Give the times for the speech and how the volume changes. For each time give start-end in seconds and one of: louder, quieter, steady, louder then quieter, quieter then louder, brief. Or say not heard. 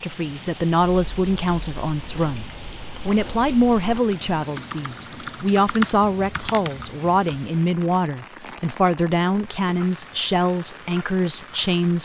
0.0-12.0 steady.